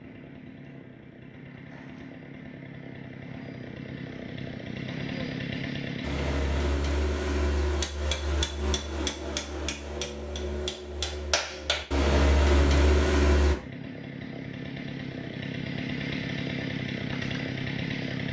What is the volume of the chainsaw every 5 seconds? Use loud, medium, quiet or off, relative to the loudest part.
medium, loud, medium, loud.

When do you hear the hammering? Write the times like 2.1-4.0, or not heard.
6.0-13.6.